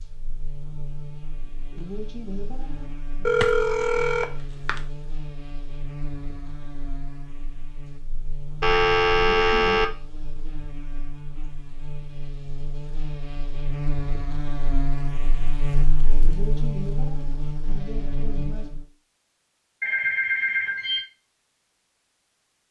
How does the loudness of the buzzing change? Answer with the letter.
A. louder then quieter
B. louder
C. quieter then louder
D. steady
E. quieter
B.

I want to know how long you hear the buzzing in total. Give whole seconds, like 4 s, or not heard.
19 s.